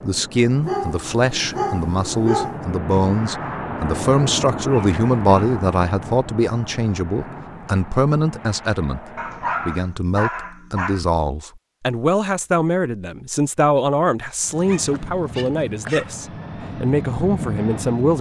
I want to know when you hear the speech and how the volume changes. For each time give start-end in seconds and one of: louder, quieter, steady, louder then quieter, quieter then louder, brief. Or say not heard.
0.0-9.0 steady
9.7-18.1 steady.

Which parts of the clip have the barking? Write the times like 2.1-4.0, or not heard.
0.6-2.6, 4.7-5.5, 9.2-11.0, 14.7-16.1.